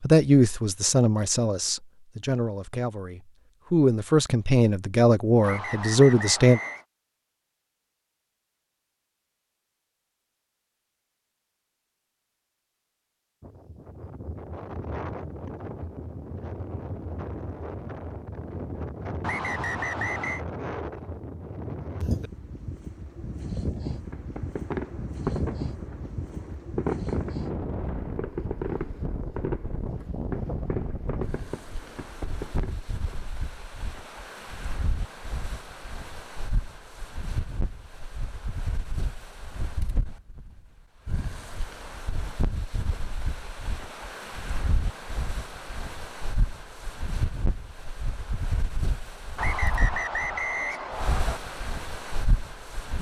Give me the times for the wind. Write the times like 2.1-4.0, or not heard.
13.4-52.9.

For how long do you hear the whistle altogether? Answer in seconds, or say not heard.
5 s.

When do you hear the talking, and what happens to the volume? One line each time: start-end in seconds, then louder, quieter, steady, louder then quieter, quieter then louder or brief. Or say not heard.
0.0-6.6 quieter then louder.